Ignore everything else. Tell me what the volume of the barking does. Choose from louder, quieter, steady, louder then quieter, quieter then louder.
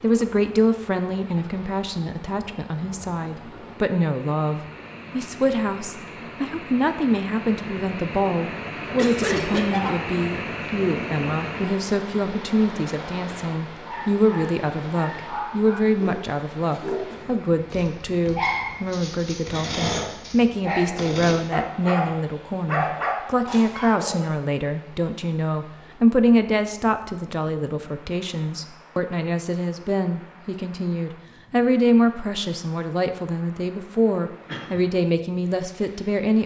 louder.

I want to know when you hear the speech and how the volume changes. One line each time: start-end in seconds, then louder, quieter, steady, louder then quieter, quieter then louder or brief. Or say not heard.
0.0-36.4 steady.